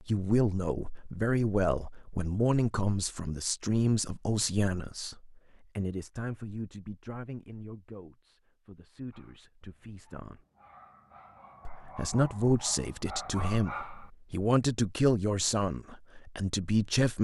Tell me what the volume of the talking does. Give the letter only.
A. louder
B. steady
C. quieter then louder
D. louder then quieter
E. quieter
C.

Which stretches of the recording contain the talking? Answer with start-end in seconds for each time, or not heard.
0.1-10.4, 11.7-17.1.